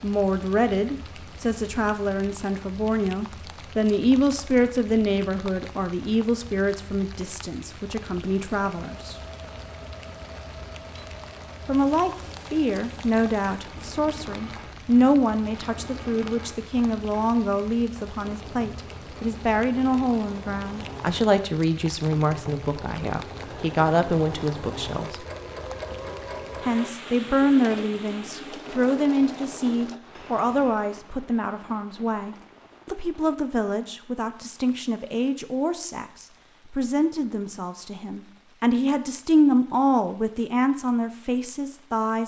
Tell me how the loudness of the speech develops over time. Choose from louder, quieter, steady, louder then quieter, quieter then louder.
steady.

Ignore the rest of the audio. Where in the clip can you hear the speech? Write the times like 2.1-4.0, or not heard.
0.0-9.2, 11.7-25.2, 26.6-42.2.